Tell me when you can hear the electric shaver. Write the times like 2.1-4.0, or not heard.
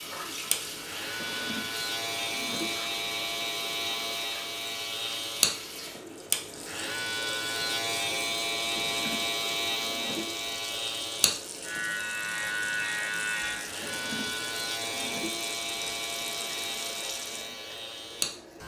0.0-18.6.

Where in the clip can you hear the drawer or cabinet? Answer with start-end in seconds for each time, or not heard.
1.1-2.8, 8.8-10.3, 13.8-15.3.